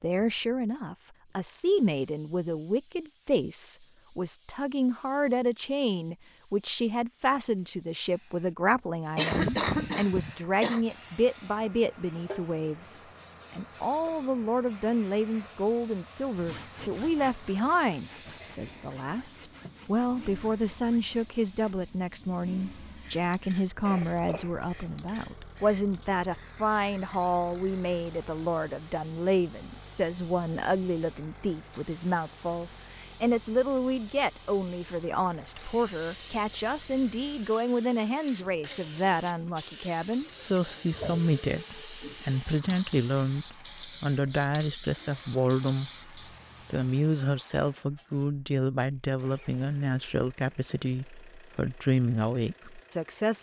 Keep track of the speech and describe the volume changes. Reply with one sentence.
The volume of the speech stays about the same.